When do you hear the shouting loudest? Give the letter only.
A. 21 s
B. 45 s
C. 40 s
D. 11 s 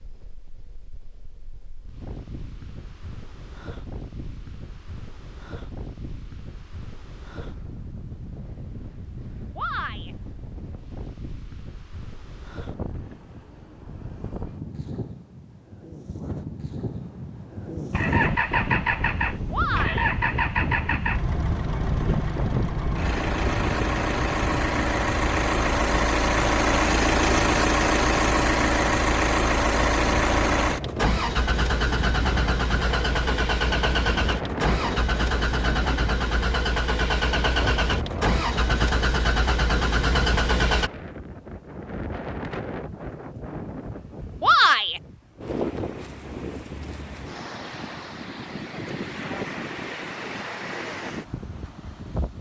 B.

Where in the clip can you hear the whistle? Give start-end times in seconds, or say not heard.
not heard.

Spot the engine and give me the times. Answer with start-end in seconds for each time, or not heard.
17.9-40.9.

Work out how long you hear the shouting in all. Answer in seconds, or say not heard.
2 s.